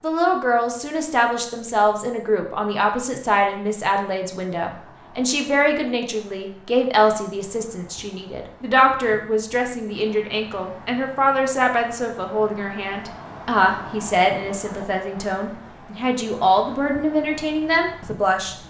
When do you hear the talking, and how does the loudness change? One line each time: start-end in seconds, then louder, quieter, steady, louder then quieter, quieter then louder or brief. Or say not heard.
0.0-18.6 steady.